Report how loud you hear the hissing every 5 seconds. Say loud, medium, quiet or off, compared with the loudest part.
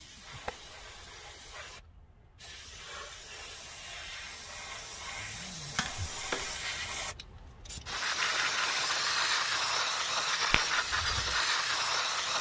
quiet, loud, loud.